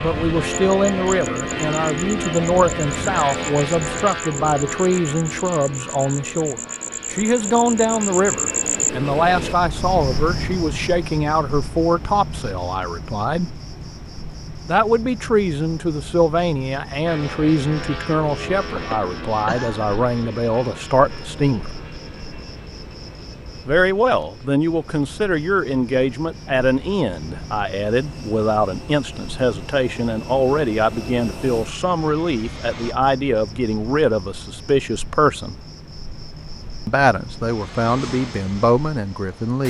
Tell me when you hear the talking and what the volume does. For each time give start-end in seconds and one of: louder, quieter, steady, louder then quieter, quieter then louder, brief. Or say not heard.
0.0-13.5 steady
14.7-21.7 steady
23.6-35.5 steady
36.9-39.6 brief.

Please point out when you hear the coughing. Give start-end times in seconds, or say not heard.
18.8-19.9.